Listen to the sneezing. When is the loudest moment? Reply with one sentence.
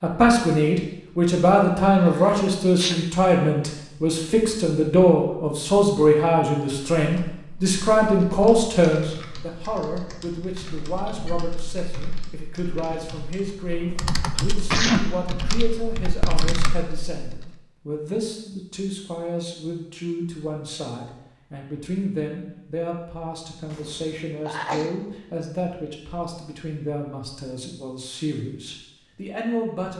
The volume of the sneezing peaks at 15 seconds.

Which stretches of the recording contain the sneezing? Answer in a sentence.
The sneezing can be heard from 2.1 to 3.0 s, from 14.3 to 15.1 s and from 23.6 to 24.9 s.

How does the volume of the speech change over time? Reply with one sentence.
The loudness of the speech goes down.